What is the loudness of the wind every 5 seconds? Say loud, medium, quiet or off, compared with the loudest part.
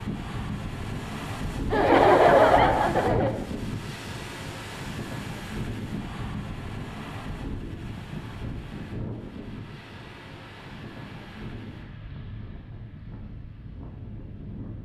loud, loud, medium.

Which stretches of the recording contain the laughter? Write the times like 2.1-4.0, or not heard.
1.7-3.4.